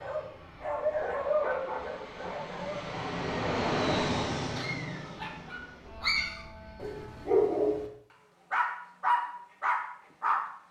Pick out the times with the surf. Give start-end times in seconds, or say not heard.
not heard.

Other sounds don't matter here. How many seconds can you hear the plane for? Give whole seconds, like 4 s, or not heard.
7 s.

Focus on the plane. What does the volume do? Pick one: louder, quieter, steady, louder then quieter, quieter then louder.
louder then quieter.